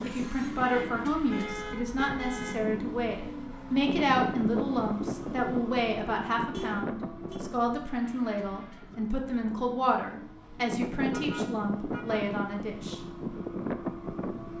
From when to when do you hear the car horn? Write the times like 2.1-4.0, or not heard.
0.7-2.5, 6.5-7.4, 11.1-12.3.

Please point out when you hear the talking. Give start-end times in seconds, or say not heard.
0.0-13.0.